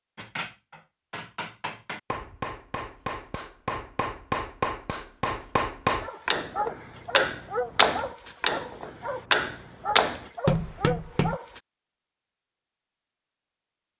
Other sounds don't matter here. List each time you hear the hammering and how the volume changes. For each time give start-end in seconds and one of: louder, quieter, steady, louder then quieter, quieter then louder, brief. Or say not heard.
0.1-11.3 louder.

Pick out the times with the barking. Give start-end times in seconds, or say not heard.
6.0-11.6.